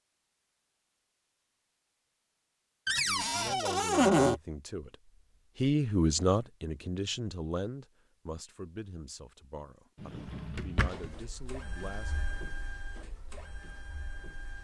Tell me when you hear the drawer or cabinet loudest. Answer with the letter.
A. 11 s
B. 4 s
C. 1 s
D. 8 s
B.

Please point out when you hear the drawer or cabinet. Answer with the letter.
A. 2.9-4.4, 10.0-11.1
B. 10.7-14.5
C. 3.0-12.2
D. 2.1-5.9
A.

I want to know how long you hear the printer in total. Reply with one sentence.
You can hear the printer for 4 seconds altogether.